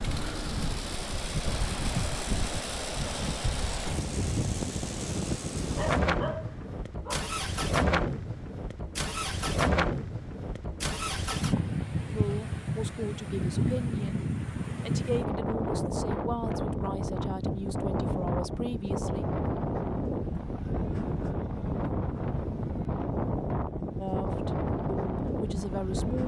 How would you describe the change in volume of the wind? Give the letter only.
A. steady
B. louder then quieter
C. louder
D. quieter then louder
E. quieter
A.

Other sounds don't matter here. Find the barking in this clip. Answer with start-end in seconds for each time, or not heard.
5.8-7.3.